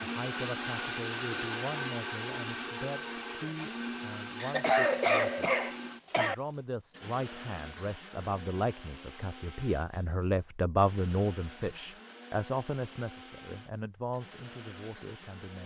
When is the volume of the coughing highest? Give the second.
5 s.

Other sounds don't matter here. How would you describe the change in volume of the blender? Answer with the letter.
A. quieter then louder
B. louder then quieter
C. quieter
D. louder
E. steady
C.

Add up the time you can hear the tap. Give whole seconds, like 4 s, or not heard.
not heard.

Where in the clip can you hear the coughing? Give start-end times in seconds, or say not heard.
4.4-6.3.